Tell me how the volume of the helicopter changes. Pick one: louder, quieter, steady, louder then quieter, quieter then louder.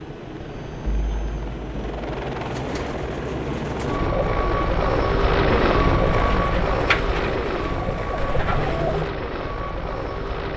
louder then quieter.